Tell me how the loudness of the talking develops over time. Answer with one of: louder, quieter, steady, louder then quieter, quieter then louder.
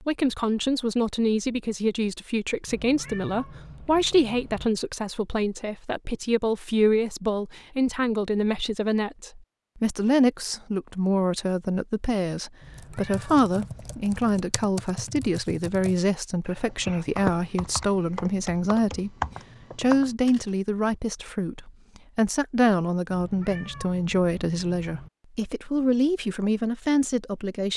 steady.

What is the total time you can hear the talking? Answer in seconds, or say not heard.
27 s.